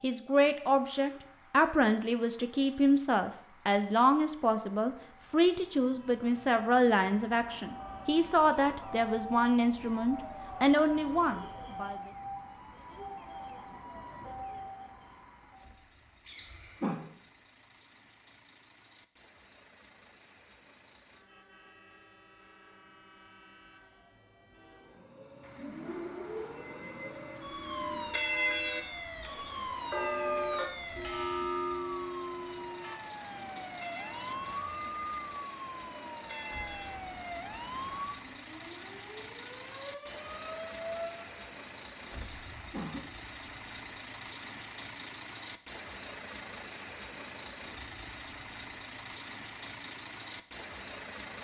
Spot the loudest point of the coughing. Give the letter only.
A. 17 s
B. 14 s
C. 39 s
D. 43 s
A.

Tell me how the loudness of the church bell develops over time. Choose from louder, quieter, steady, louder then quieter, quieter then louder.
quieter.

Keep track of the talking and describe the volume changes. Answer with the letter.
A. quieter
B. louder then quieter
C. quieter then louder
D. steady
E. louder
D.